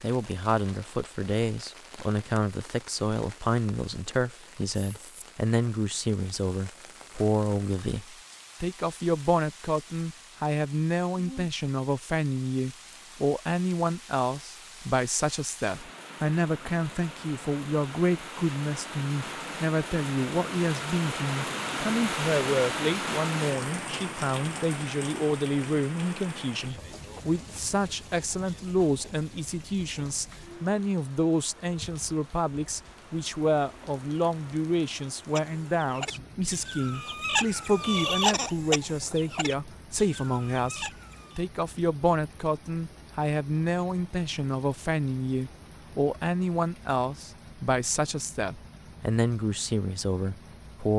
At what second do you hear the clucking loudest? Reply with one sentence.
The volume of the clucking peaks at 38 seconds.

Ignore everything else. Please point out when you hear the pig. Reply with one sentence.
You can't hear the pig here.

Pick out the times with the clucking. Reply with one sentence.
The clucking can be heard from 35.3 to 41.5 s.